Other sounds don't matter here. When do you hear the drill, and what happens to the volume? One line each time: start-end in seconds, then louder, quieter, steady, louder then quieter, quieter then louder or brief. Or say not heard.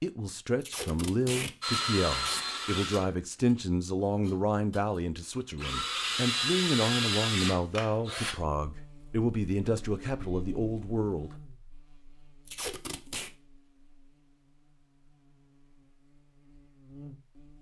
1.6-8.3 quieter then louder.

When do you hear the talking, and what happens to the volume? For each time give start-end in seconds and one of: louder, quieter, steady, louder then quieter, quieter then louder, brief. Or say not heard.
0.0-11.3 steady.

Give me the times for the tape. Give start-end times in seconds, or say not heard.
0.6-2.5, 12.4-13.3.